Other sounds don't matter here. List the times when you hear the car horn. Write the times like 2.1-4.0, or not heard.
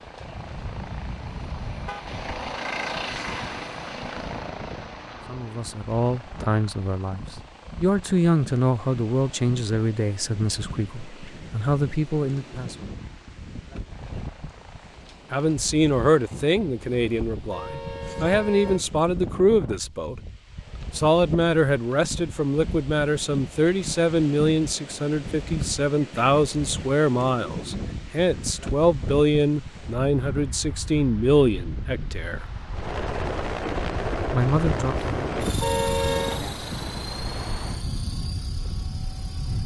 0.2-2.4, 16.6-18.9, 34.6-36.4.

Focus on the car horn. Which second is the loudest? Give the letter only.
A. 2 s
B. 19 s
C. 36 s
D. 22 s
C.